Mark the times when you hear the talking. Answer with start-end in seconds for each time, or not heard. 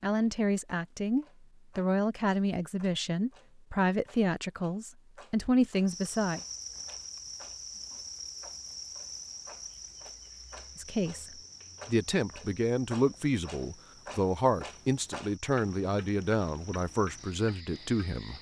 0.0-6.4, 10.8-11.2, 11.8-18.3.